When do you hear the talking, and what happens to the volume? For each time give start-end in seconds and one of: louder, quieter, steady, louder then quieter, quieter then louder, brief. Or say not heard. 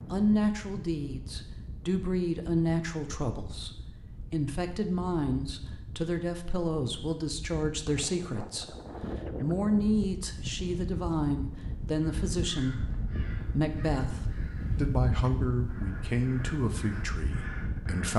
0.1-18.1 steady.